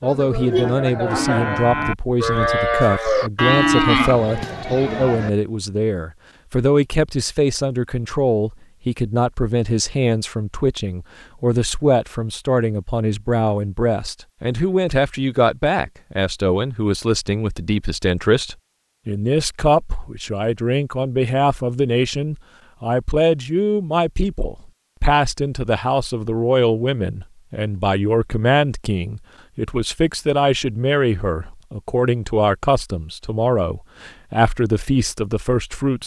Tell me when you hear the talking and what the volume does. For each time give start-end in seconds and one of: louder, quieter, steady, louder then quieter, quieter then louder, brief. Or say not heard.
0.0-36.0 steady.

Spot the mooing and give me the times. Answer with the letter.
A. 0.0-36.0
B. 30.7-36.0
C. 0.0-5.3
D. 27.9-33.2
C.